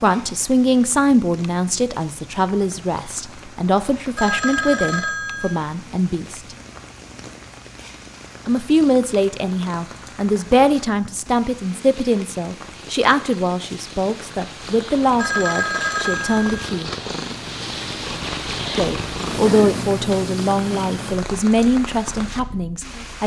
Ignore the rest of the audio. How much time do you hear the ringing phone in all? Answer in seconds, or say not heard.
3 s.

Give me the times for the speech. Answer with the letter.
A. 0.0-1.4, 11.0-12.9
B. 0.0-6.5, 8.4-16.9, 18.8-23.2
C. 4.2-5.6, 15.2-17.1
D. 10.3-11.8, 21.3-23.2
B.